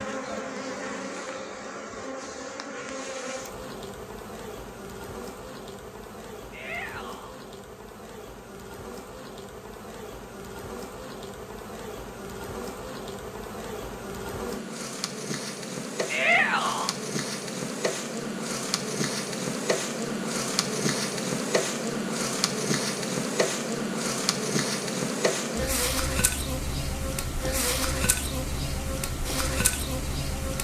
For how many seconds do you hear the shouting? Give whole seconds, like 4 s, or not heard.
2 s.